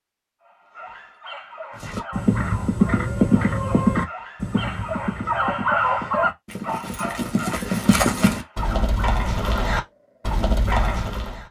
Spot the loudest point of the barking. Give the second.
6 s.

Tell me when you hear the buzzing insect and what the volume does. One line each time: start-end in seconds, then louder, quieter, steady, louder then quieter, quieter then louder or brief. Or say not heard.
not heard.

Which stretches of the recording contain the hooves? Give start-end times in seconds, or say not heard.
1.8-11.4.